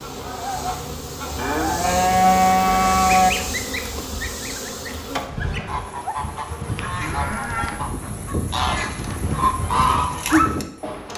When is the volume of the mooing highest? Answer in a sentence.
The loudest moment of the mooing is at 2 seconds.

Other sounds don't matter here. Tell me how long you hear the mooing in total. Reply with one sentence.
The mooing can be heard for 3 seconds in total.